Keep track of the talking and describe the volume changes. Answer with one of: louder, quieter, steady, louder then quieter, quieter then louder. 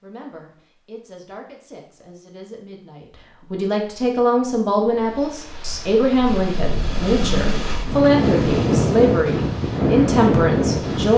louder.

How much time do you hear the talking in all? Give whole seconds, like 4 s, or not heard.
11 s.